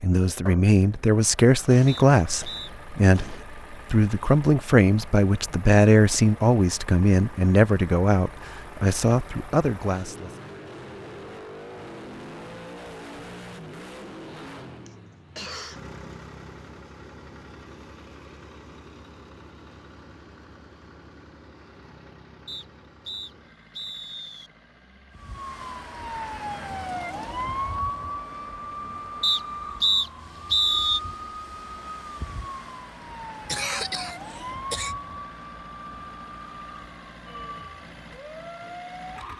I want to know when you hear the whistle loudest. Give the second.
31 s.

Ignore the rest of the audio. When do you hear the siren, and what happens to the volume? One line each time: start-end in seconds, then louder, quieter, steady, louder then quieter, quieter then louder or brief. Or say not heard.
25.1-39.3 quieter.